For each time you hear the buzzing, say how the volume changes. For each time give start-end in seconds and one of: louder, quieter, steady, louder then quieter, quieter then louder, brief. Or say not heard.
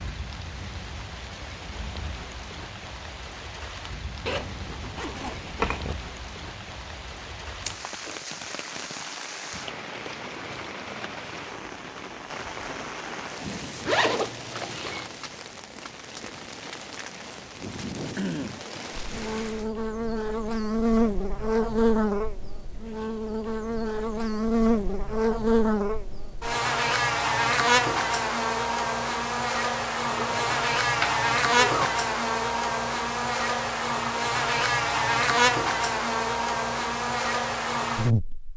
18.9-38.5 steady.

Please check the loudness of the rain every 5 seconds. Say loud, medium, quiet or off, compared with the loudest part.
loud, loud, loud, loud, off, off, off, off.